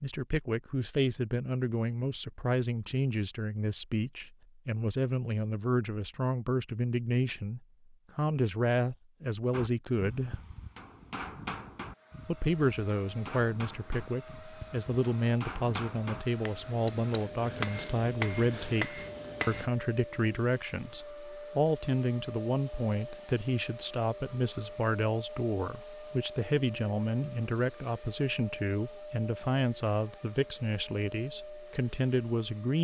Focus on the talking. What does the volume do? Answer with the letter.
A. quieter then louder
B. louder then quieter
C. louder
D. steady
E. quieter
D.